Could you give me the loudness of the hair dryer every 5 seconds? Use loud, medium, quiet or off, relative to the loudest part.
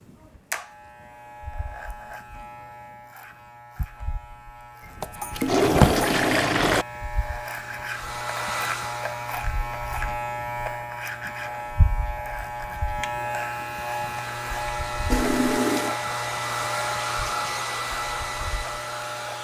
off, medium, medium, loud.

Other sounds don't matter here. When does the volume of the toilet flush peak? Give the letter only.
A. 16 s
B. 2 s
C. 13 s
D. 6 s
D.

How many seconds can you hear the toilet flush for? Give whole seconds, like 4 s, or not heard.
3 s.